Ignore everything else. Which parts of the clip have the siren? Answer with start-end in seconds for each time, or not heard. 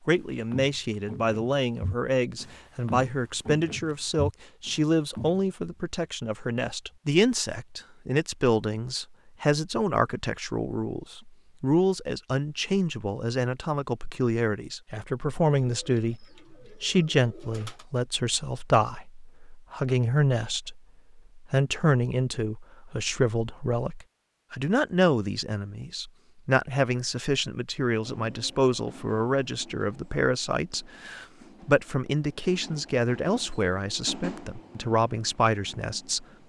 not heard.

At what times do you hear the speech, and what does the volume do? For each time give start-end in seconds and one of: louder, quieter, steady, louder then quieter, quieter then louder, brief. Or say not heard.
0.1-36.2 steady.